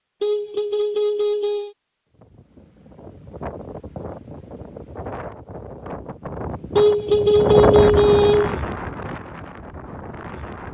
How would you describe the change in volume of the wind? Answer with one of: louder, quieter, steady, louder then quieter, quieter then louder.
louder then quieter.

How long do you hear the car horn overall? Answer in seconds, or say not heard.
3 s.